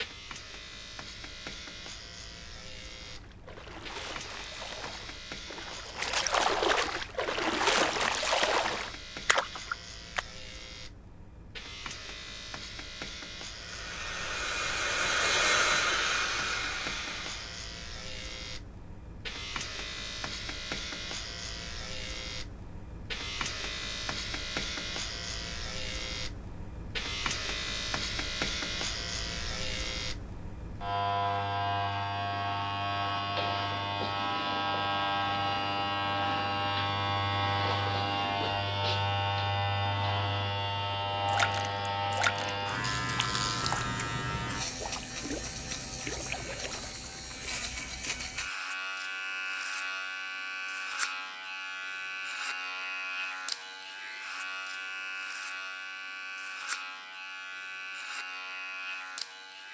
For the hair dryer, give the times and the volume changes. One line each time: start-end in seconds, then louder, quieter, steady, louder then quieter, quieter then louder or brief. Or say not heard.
13.4-17.6 louder then quieter.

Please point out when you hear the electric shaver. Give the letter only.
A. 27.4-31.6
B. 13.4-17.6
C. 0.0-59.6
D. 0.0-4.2
C.